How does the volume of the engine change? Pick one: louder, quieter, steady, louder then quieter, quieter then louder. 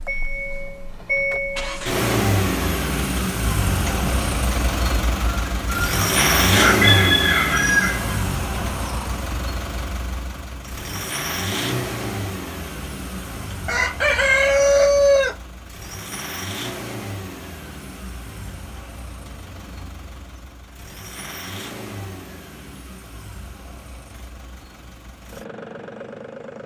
quieter.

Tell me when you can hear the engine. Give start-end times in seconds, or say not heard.
0.0-26.6.